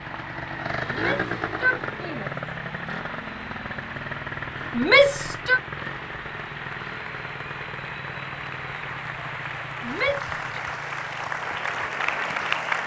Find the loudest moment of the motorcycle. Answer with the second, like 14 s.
1 s.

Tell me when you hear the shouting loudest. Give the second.
5 s.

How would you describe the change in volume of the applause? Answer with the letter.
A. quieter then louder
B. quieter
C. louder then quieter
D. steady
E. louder
E.